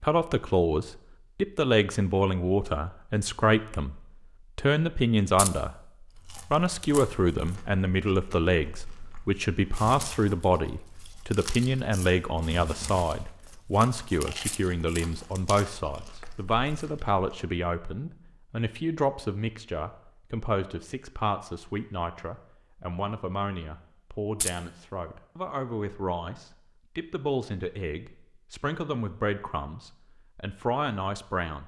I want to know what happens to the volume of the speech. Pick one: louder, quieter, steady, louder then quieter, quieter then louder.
quieter.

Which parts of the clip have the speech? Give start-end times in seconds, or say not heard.
0.0-5.7, 6.5-31.6.